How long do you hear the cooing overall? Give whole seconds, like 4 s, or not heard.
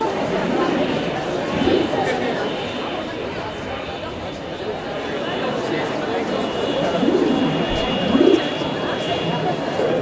3 s.